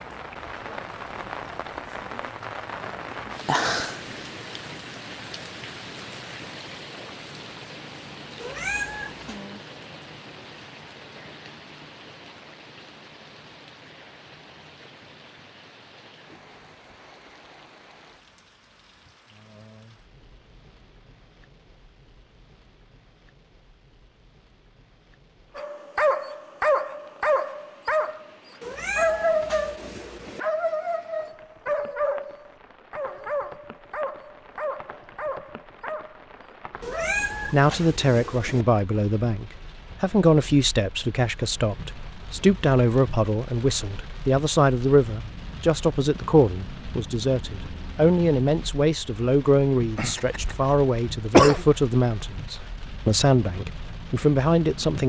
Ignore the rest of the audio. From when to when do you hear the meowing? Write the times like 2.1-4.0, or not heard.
8.4-9.4, 28.6-30.4, 36.8-38.6.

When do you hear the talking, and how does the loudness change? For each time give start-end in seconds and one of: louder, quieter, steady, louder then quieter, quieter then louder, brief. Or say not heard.
37.5-55.0 steady.